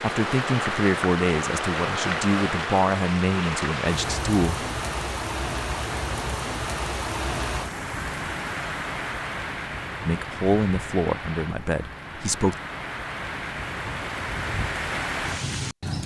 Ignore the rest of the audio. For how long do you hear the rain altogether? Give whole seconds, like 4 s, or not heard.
16 s.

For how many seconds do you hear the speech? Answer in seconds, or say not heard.
7 s.